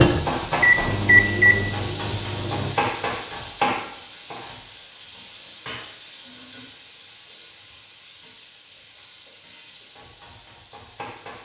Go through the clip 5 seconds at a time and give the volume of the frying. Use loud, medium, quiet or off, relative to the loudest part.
loud, quiet, quiet.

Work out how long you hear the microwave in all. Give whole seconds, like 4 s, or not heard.
3 s.